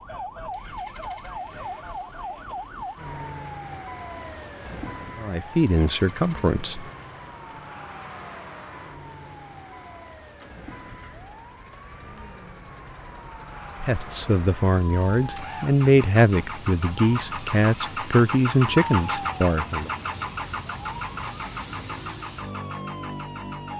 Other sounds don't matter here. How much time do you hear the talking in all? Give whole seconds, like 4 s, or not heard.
8 s.